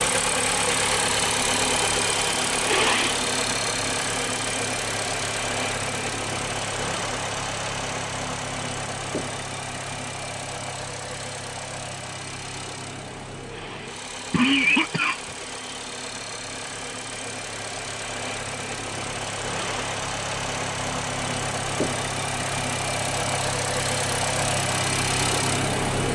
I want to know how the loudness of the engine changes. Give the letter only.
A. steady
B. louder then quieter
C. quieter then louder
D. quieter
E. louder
C.